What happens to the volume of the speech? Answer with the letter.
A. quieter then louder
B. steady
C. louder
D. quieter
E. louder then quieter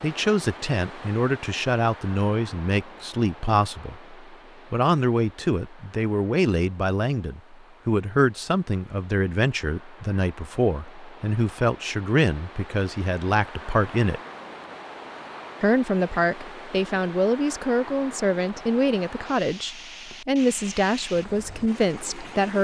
B.